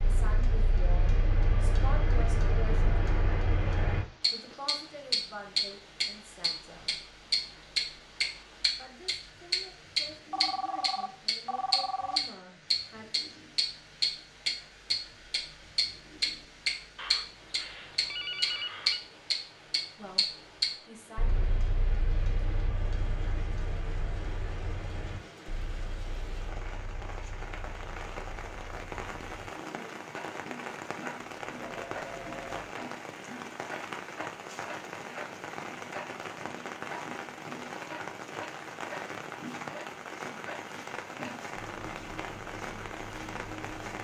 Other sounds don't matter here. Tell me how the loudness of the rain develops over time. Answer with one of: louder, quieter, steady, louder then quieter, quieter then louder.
louder.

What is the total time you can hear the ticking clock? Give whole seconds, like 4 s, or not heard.
44 s.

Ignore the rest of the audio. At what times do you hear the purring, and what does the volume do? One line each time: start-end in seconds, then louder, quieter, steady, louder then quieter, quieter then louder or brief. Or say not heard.
not heard.